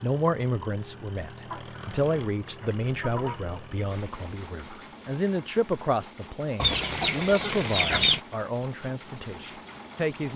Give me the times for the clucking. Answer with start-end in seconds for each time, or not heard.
1.4-3.4, 6.6-8.2.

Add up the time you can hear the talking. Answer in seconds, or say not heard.
10 s.